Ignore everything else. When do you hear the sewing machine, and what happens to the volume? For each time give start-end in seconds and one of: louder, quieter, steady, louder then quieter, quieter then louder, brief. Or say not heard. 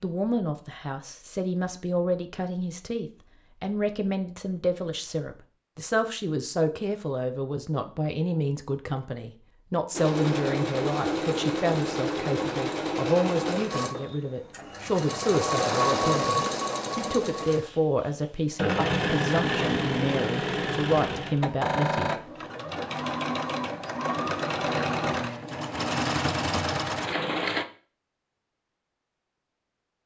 9.9-27.6 steady.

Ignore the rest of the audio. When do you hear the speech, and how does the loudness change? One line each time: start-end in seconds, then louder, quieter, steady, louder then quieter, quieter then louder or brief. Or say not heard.
0.0-22.1 steady.